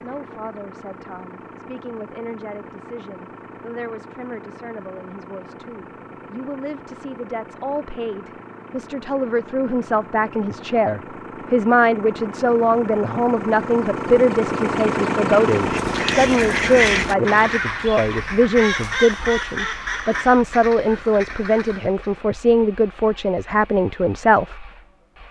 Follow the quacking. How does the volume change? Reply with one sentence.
The volume of the quacking goes down.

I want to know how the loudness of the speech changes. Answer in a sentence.
The volume of the speech goes up.